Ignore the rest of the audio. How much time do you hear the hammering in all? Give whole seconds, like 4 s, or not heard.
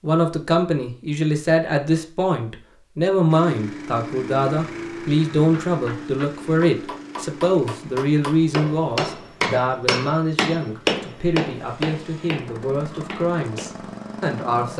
8 s.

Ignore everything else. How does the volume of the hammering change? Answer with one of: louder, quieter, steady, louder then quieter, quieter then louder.
louder then quieter.